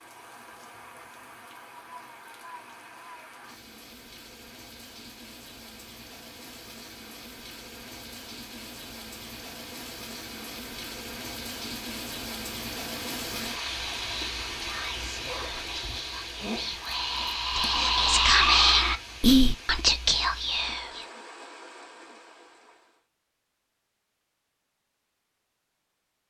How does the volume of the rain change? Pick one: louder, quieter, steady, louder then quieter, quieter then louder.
louder then quieter.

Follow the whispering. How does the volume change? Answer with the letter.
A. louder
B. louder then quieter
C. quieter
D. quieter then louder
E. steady
A.